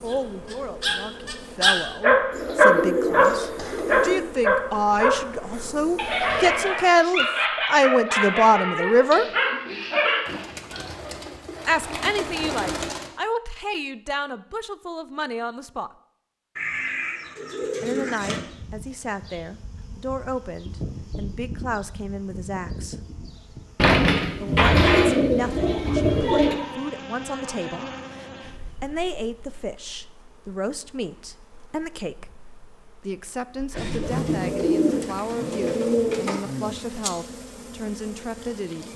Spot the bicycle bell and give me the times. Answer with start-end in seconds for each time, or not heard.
not heard.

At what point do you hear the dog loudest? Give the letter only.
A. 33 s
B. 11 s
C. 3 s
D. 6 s
C.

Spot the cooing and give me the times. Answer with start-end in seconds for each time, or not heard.
2.3-4.2, 10.2-13.1, 16.6-18.4, 23.8-26.6, 33.8-36.4.